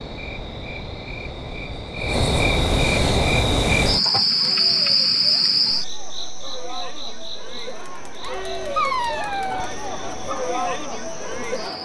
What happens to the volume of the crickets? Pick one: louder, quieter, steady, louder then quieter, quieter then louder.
louder then quieter.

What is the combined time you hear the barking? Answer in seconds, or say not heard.
2 s.